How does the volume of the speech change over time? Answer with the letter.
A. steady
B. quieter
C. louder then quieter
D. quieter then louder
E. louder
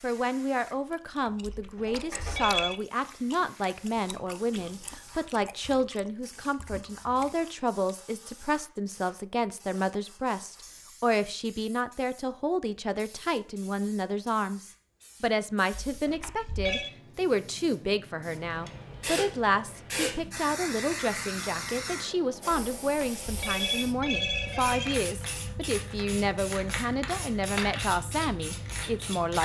A.